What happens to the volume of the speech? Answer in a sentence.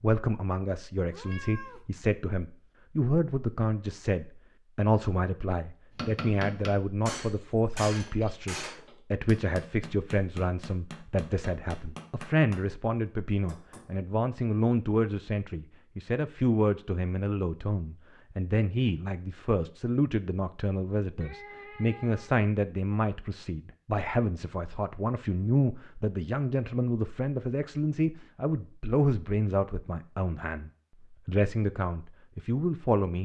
The volume of the speech stays about the same.